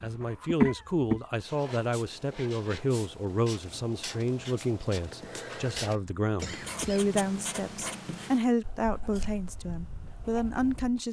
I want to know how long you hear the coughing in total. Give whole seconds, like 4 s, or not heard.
2 s.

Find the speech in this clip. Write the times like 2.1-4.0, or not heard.
0.0-11.0.